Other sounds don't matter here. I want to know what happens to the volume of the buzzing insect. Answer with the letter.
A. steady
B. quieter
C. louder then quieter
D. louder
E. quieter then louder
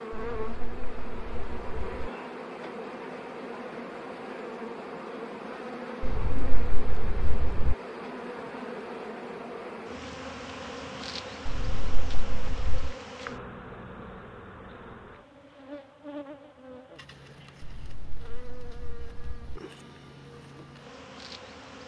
B.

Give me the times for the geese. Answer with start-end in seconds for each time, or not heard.
0.1-2.1, 6.0-7.8, 11.4-12.9, 17.6-19.6.